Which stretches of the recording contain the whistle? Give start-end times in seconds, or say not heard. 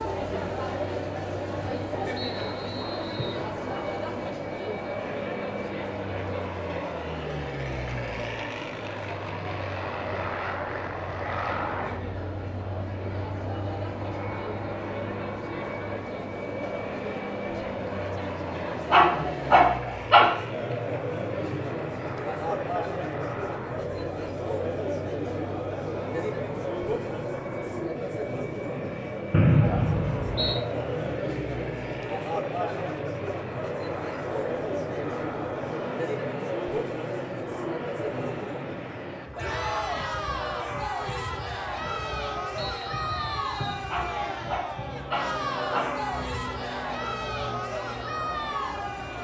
2.1-3.5, 29.3-30.6, 42.5-43.9.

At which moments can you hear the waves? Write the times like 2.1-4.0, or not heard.
not heard.